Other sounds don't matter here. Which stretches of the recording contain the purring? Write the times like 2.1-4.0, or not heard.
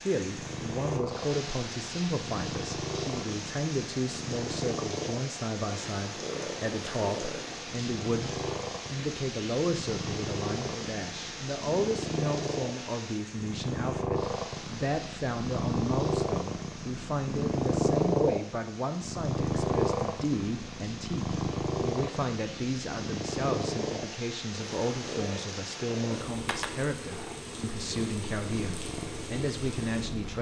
0.1-30.3.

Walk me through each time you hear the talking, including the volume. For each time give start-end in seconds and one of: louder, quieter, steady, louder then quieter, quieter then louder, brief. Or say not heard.
0.0-30.3 steady.